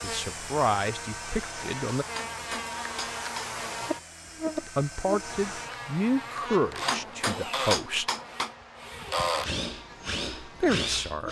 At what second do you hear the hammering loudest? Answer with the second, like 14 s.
8 s.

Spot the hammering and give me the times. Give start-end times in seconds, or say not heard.
2.1-3.5, 6.8-8.5.